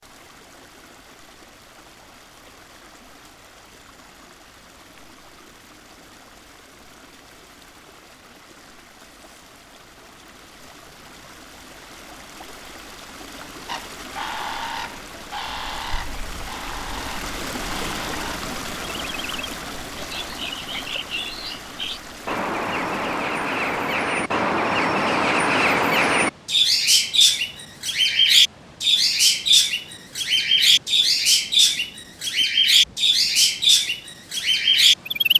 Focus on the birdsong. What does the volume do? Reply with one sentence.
The loudness of the birdsong goes up.